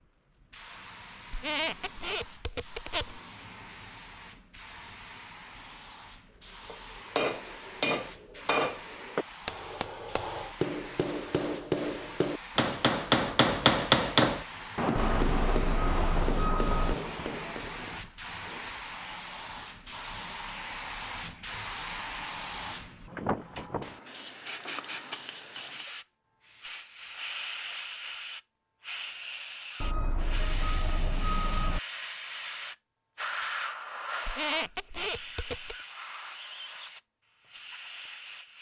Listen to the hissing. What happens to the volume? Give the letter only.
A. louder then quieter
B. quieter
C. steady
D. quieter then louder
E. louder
E.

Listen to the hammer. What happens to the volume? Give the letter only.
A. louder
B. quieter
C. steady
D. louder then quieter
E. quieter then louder
D.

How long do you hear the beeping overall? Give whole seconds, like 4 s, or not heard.
4 s.